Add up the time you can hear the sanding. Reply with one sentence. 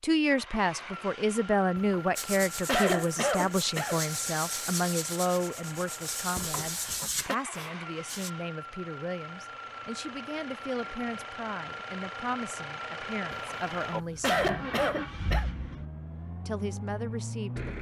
You can hear the sanding for 6 seconds altogether.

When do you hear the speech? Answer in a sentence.
The speech can be heard from 0.0 to 14.4 s and from 16.4 to 17.7 s.